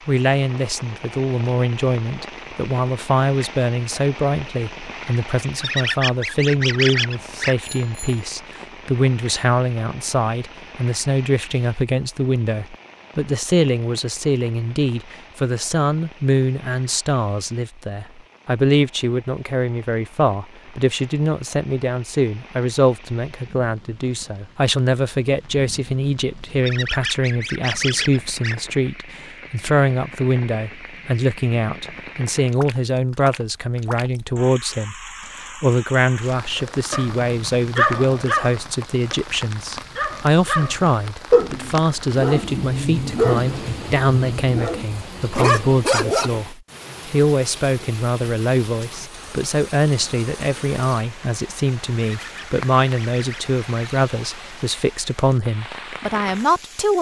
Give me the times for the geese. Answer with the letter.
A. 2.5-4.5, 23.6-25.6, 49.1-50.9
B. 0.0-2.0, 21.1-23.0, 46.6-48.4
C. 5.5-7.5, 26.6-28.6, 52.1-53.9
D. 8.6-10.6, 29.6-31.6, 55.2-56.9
C.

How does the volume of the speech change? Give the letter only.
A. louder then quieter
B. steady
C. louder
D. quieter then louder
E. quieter
B.